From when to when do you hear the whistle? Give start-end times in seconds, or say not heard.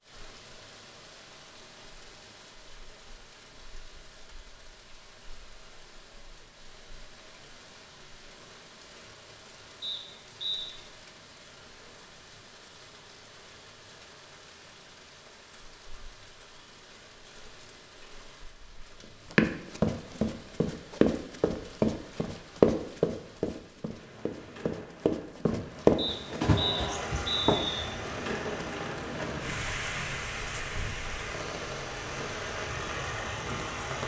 9.8-10.7, 25.9-27.9.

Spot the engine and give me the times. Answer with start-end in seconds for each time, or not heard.
26.5-34.0.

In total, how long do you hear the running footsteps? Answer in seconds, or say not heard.
8 s.